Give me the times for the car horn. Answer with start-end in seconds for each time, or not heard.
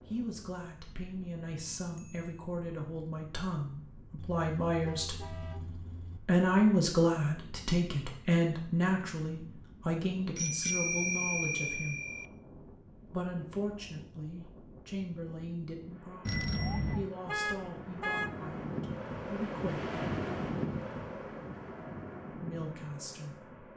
4.2-6.2, 17.2-18.6.